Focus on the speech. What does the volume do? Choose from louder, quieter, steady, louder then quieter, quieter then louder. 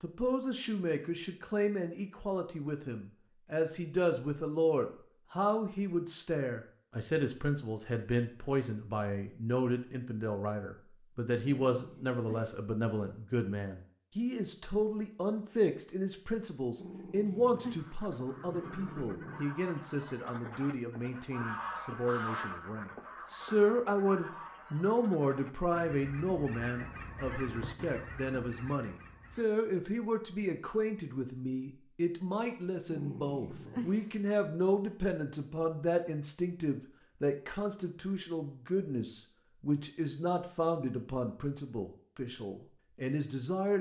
steady.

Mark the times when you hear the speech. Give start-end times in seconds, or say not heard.
0.0-43.7.